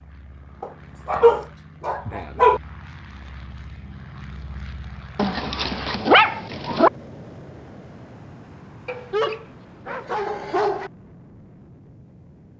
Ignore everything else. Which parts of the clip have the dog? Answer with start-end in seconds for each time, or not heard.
0.6-2.6, 5.2-6.9, 8.8-10.9.